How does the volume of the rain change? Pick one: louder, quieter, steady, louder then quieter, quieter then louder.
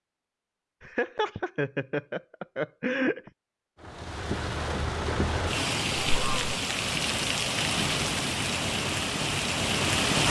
steady.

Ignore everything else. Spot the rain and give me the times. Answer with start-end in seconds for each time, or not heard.
3.8-10.2.